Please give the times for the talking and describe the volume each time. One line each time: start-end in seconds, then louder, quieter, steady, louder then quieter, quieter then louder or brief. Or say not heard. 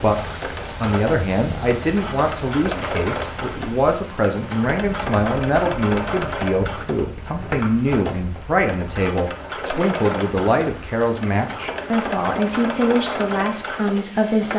0.0-14.5 steady.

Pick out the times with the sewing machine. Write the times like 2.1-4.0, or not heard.
0.0-14.5.